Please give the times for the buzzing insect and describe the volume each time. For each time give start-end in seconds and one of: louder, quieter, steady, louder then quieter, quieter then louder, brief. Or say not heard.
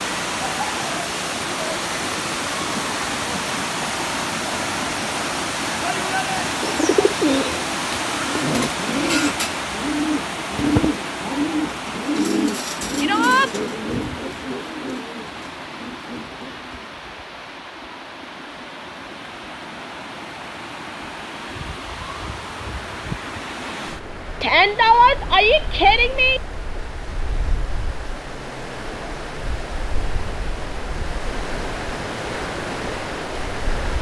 not heard.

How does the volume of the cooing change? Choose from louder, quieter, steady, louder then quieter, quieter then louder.
quieter.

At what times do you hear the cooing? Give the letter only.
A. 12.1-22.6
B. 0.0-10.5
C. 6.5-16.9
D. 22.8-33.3
C.